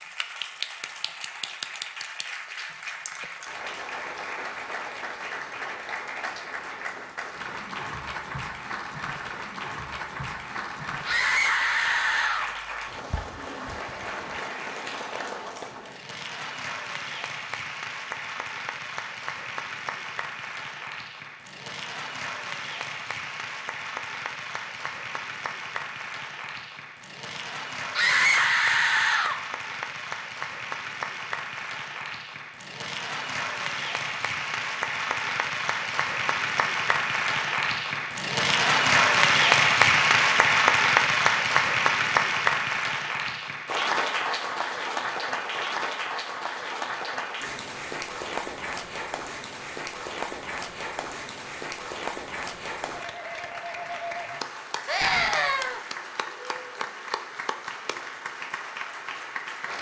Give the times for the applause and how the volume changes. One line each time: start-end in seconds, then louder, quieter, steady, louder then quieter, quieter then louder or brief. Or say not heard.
0.0-59.7 louder then quieter.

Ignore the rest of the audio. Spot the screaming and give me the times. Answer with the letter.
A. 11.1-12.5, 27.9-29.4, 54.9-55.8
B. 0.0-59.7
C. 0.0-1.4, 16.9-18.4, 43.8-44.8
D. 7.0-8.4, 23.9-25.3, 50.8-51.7
A.